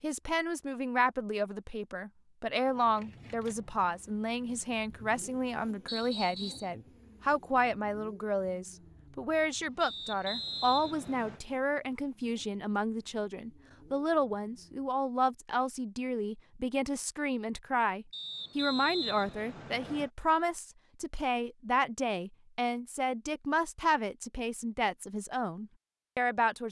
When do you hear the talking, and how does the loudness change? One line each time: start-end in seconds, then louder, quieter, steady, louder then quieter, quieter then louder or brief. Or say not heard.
0.0-26.6 steady.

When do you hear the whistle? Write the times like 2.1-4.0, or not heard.
5.8-6.7, 9.8-11.4, 18.1-20.1.